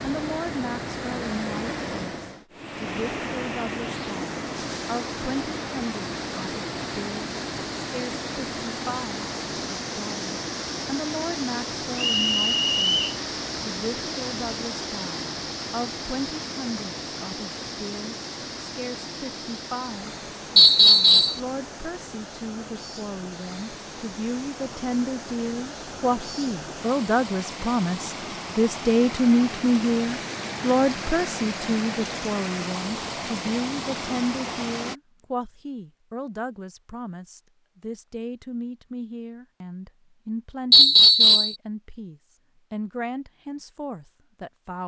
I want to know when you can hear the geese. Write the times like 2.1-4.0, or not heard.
not heard.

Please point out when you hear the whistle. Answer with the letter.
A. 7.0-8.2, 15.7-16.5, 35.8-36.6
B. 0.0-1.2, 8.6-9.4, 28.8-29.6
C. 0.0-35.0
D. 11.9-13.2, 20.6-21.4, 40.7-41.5
D.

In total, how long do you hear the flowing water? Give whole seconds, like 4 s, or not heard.
35 s.